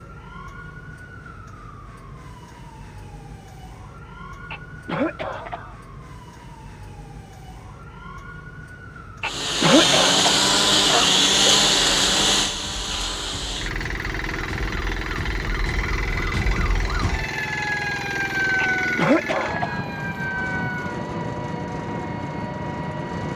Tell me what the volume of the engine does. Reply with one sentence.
The loudness of the engine goes down.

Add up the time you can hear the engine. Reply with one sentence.
You can hear the engine for 14 seconds altogether.